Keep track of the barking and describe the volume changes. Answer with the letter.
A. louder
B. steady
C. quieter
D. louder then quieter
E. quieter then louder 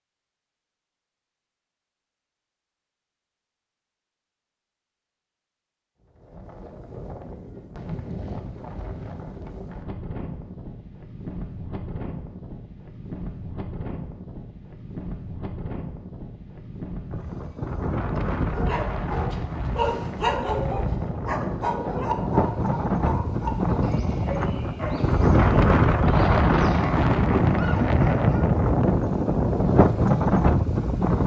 C.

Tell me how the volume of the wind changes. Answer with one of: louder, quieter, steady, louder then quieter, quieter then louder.
louder.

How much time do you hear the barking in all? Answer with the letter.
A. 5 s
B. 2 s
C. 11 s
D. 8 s
C.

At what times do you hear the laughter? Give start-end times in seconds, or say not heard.
not heard.